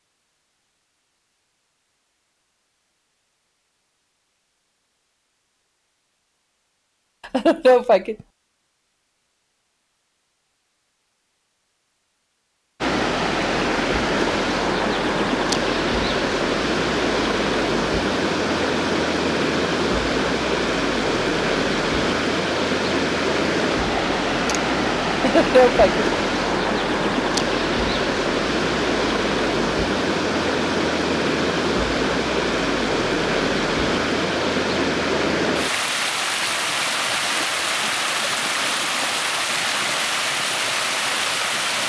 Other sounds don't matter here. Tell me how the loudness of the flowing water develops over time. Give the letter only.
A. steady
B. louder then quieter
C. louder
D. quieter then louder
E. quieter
A.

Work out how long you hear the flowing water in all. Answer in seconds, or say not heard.
29 s.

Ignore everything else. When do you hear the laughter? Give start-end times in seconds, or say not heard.
7.2-8.2, 25.2-26.1.